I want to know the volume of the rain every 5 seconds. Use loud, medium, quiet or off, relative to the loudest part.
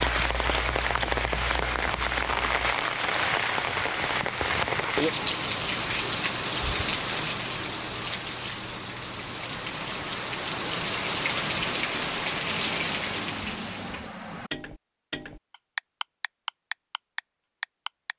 loud, loud, loud, off.